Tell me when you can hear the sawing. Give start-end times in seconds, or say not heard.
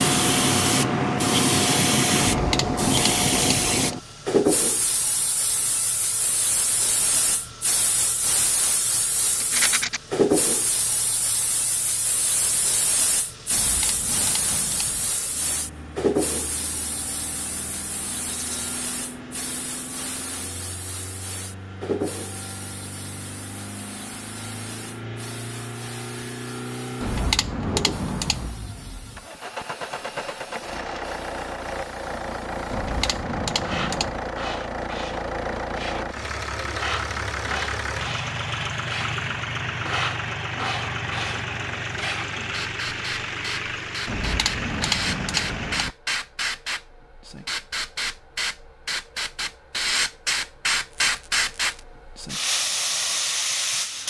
not heard.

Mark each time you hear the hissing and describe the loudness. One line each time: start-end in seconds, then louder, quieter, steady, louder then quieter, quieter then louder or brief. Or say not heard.
0.0-54.0 quieter then louder.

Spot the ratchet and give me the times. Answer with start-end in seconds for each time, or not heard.
2.3-3.9, 13.5-15.2, 27.0-28.6, 32.7-34.2, 44.0-46.0.